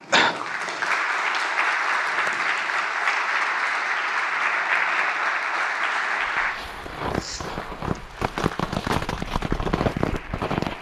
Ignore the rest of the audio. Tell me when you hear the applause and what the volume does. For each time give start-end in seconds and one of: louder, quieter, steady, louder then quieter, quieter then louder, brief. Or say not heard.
0.0-10.7 quieter.